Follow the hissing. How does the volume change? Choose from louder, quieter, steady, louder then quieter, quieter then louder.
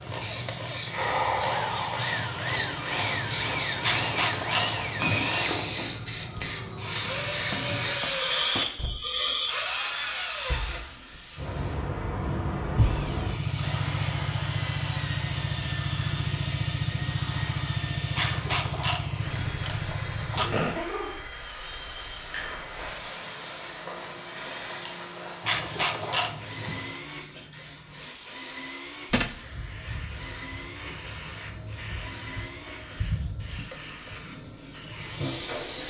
quieter.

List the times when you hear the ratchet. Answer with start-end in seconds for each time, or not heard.
3.8-5.7, 18.1-20.5, 25.4-27.0.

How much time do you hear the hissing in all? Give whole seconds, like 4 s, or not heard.
36 s.